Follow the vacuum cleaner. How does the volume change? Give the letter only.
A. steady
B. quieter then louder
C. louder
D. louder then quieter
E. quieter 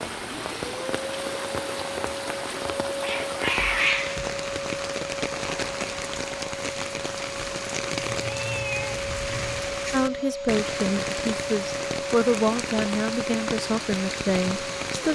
A.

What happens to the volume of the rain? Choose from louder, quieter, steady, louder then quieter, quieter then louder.
steady.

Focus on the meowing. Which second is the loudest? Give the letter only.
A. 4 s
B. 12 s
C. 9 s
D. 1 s
A.